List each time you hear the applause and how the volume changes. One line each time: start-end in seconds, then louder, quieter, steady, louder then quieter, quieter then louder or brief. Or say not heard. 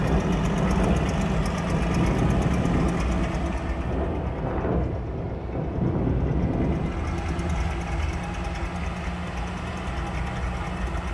not heard.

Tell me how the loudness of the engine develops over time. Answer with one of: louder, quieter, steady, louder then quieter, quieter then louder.
quieter then louder.